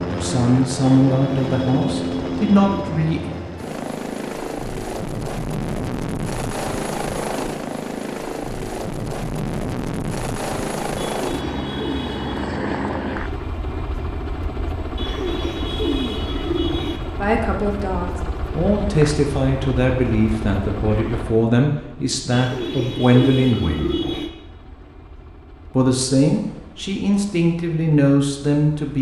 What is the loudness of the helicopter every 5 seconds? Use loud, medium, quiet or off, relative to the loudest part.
loud, loud, loud, medium, medium, quiet.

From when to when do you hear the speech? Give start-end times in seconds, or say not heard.
0.1-3.3, 17.1-24.1, 25.8-28.9.